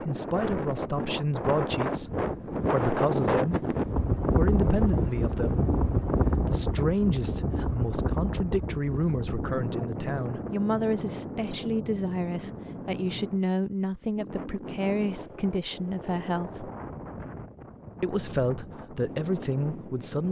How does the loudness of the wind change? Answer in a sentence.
The volume of the wind goes down.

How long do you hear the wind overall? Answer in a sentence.
You can hear the wind for 20 seconds altogether.